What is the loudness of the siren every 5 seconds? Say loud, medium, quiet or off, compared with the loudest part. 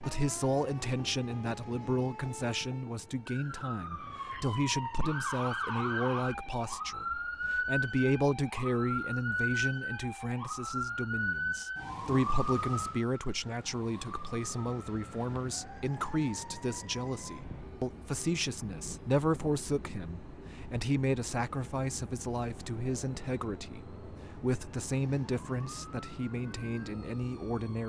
medium, loud, loud, quiet, quiet, quiet.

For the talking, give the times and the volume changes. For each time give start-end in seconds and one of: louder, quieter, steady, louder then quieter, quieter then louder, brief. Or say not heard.
0.0-27.8 steady.